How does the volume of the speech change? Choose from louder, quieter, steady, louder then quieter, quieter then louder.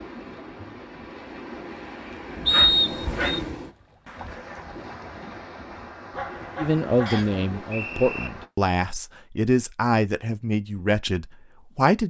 steady.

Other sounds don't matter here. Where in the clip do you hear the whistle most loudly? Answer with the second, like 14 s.
3 s.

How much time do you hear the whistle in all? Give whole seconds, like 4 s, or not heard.
2 s.